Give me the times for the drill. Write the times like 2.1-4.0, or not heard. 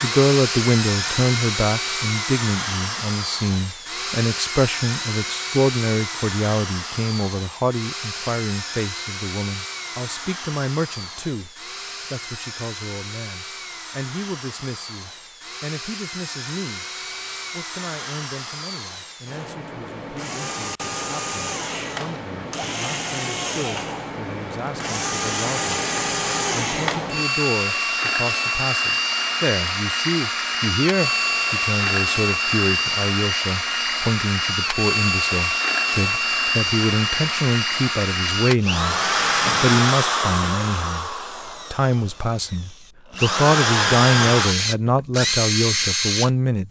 0.0-46.6.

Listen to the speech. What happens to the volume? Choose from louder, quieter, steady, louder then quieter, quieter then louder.
quieter then louder.